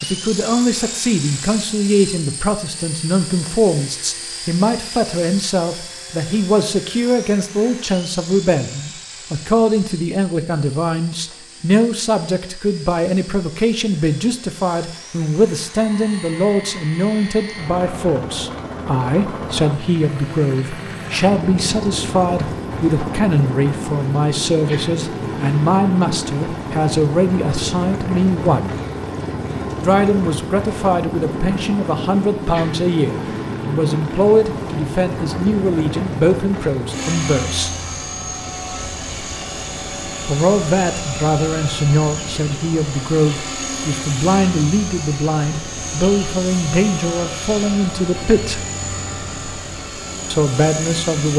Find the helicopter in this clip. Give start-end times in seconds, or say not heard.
0.0-51.3.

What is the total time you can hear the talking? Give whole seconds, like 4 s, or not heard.
46 s.